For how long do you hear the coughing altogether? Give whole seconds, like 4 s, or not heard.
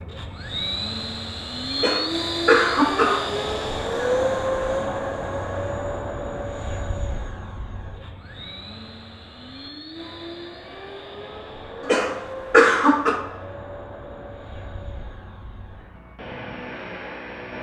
3 s.